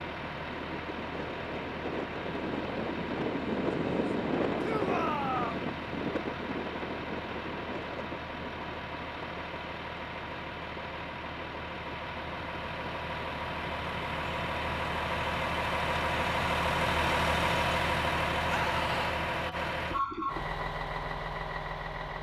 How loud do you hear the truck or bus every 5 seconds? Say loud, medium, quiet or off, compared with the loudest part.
medium, medium, medium, loud, medium.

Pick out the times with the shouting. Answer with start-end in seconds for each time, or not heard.
4.6-5.7, 18.5-19.2.